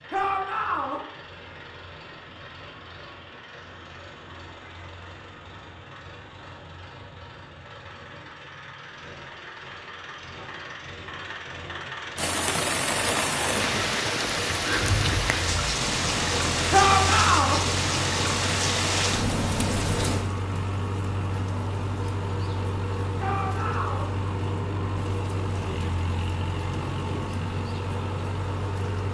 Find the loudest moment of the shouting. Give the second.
17 s.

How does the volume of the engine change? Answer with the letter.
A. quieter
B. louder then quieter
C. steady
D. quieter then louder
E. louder
E.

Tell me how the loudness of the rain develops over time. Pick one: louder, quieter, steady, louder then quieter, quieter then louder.
quieter.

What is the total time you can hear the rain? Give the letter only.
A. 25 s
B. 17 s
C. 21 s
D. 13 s
B.